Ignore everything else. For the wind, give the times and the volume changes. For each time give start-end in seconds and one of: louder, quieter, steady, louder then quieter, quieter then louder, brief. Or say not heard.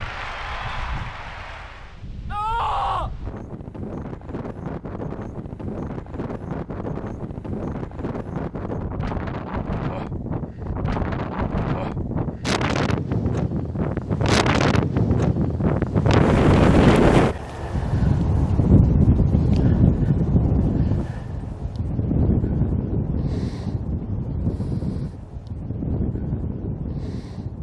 0.0-27.5 louder then quieter.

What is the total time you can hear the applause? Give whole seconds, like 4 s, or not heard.
2 s.